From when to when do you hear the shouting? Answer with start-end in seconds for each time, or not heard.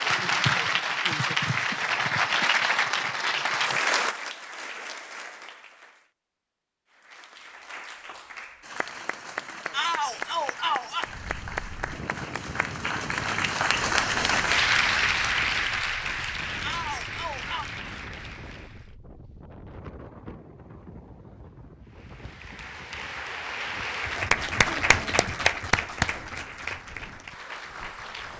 9.7-11.1, 16.6-17.6.